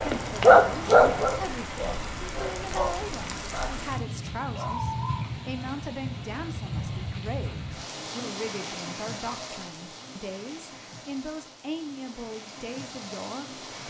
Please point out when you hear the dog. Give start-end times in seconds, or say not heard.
0.0-3.8, 4.5-5.2.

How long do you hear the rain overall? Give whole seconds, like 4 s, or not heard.
14 s.